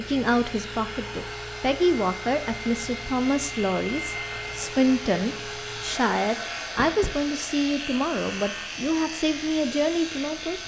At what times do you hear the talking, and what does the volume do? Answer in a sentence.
The talking can be heard from 0.0 to 10.6 s, at a steady volume.